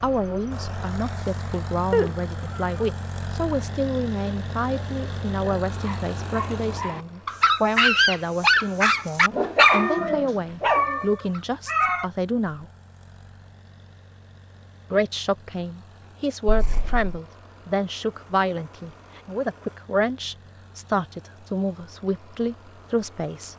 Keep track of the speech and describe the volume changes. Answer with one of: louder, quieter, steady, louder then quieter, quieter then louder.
steady.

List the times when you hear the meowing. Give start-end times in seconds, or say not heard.
1.9-2.6, 9.8-12.1, 16.4-17.2.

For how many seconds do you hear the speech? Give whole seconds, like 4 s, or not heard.
21 s.